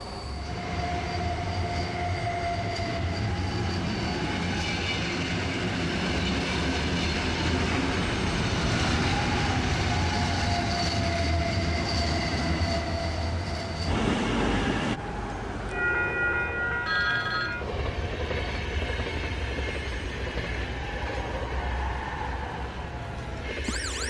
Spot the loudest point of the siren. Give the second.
9 s.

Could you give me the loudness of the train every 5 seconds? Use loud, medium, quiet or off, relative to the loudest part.
loud, loud, loud, loud, medium.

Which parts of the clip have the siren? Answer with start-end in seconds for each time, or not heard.
0.0-24.0.